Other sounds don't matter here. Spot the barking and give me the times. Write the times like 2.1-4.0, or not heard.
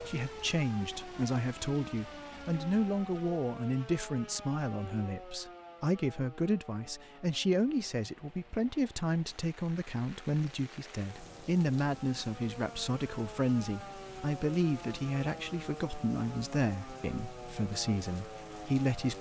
not heard.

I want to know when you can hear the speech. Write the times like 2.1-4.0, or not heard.
0.0-19.1.